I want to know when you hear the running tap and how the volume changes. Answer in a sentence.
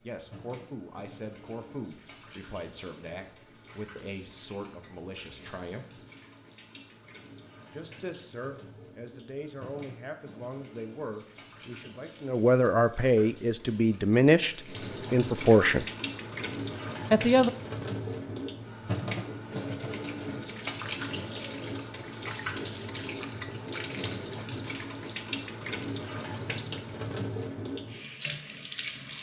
The running tap can be heard from 0.0 to 29.1 s, getting louder.